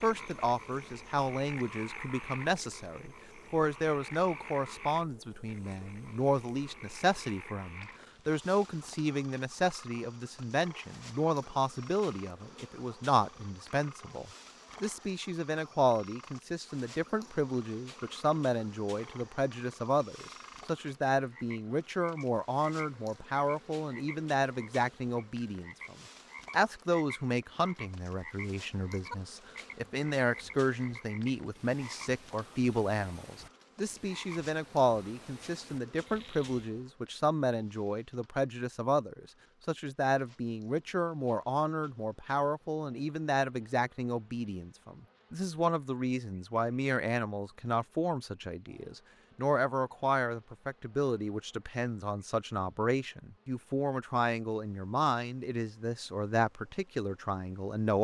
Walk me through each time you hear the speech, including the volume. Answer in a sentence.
You can hear the speech from 0.0 to 57.9 s, at a steady volume.